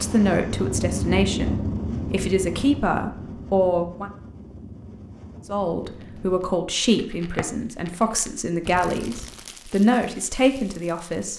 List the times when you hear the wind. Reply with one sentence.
You can hear the wind from 0.0 to 6.5 s.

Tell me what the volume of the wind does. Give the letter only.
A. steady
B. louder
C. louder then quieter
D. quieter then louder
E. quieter
E.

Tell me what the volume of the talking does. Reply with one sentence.
The volume of the talking stays about the same.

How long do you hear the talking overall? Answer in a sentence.
You can hear the talking for 10 seconds altogether.